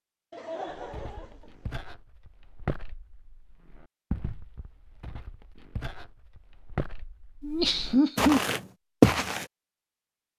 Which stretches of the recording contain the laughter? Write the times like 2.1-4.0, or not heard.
0.3-1.8, 7.4-8.4.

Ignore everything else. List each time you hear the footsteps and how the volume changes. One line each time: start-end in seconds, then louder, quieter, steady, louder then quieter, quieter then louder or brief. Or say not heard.
0.8-9.4 quieter then louder.